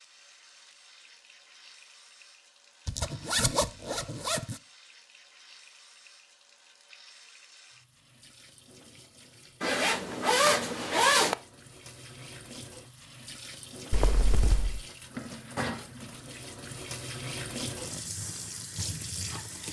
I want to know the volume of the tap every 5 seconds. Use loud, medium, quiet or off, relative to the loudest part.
quiet, quiet, medium, loud.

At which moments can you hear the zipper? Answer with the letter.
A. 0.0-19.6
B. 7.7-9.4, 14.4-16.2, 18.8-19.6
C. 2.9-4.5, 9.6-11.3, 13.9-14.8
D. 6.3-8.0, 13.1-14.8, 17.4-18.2
C.